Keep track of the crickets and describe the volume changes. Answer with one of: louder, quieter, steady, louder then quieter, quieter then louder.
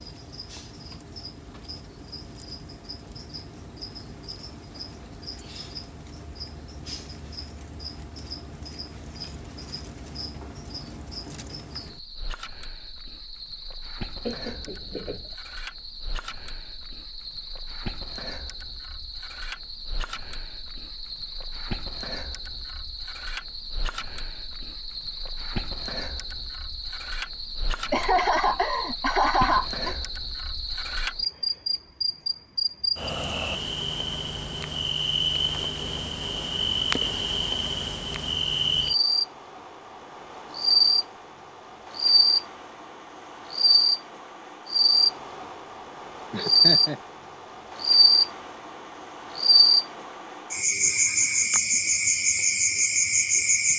louder.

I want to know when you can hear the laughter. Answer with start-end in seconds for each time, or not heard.
14.2-15.3, 27.9-29.9, 46.3-47.0.